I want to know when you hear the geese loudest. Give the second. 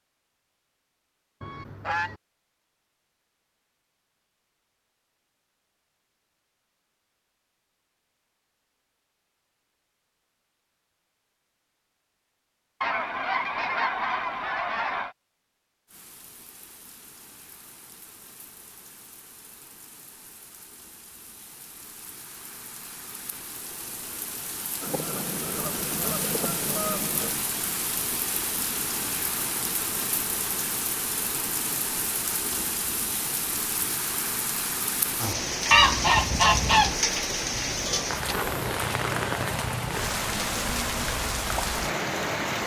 36 s.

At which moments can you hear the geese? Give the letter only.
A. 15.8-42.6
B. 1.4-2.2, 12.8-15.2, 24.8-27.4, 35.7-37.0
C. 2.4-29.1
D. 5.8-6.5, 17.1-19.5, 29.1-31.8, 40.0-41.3
B.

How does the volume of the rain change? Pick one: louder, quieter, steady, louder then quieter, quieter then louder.
louder.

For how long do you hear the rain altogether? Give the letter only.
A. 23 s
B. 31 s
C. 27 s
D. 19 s
C.